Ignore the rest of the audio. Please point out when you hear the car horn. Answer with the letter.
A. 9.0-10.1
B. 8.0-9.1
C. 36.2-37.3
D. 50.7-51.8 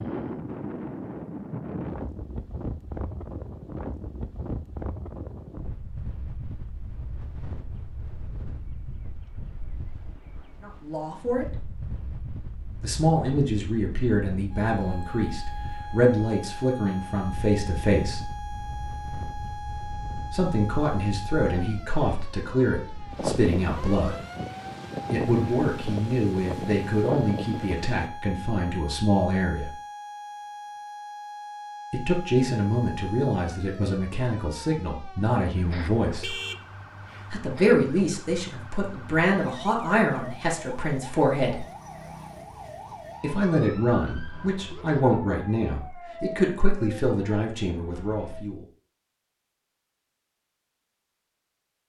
C.